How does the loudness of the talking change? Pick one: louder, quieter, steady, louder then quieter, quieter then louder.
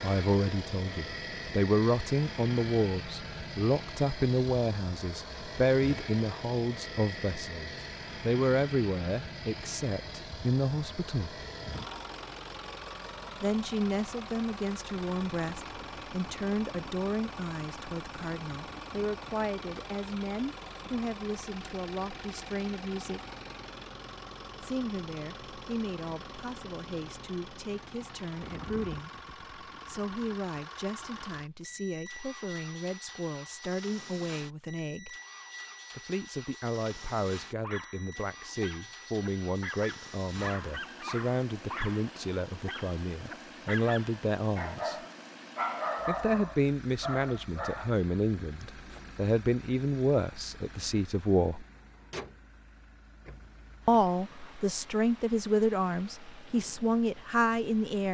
quieter then louder.